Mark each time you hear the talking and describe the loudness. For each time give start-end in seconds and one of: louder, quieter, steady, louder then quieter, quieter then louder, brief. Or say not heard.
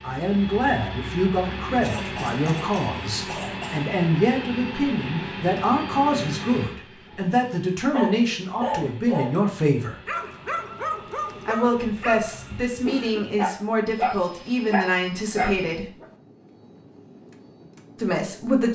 0.0-9.9 steady
11.4-15.9 steady
17.9-18.7 brief.